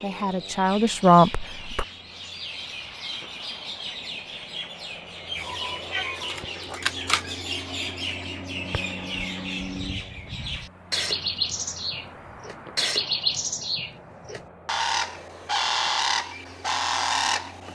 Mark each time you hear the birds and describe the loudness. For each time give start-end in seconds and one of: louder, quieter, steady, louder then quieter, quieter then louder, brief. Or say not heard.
0.0-17.6 louder.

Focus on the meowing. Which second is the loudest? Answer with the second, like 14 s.
7 s.